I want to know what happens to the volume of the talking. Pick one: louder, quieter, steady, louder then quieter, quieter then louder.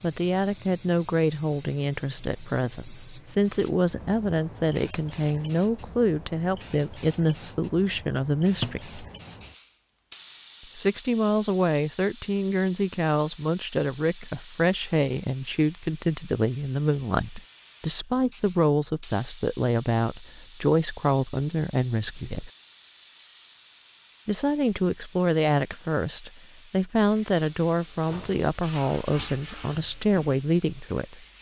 steady.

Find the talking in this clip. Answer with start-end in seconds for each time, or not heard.
0.0-9.0, 10.8-22.5, 24.2-31.2.